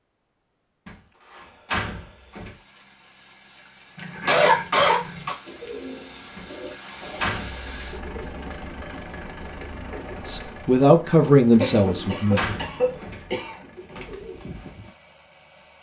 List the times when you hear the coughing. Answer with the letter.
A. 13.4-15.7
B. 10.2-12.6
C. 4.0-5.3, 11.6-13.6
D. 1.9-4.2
C.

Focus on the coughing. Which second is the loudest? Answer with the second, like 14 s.
4 s.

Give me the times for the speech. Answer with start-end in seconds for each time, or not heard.
10.2-12.6.